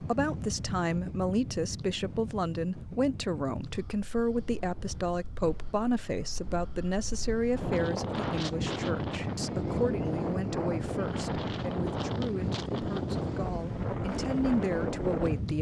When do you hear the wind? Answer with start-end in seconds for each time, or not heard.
0.0-15.5.